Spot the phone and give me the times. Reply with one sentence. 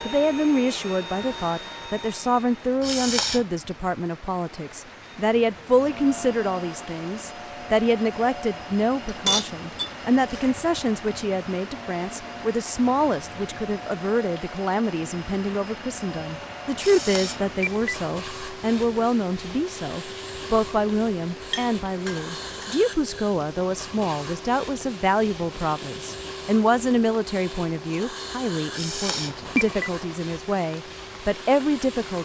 You can hear the phone from 2.8 to 3.5 s, from 16.8 to 18.0 s and from 28.7 to 29.9 s.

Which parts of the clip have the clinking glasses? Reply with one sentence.
You can hear the clinking glasses from 9.1 to 10.5 s and from 21.5 to 22.8 s.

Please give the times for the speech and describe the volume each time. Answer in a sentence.
You can hear the speech from 0.1 to 32.2 s, at a steady volume.